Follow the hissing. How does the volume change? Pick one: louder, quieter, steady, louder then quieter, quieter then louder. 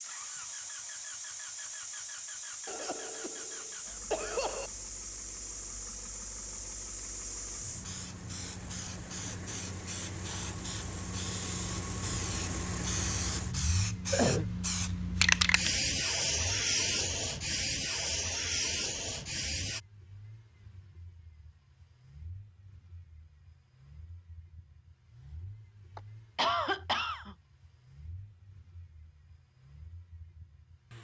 louder.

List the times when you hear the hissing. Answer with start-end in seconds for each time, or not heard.
0.0-19.8.